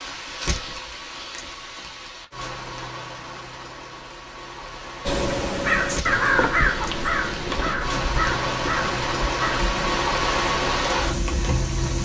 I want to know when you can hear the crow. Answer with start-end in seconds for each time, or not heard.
5.0-11.2.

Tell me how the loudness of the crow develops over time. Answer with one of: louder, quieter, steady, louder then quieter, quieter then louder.
quieter.